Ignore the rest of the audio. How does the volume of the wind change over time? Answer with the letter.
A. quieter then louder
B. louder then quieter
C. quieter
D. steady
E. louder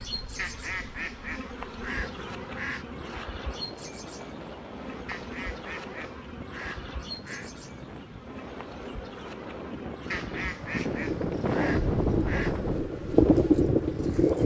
E.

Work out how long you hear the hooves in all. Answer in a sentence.
The hooves can be heard for 3 seconds in total.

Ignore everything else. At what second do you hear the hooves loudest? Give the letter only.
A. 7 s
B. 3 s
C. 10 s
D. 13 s
D.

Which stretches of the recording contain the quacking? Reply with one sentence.
The quacking can be heard from 0.3 to 2.9 s, from 5.0 to 7.5 s and from 10.1 to 12.6 s.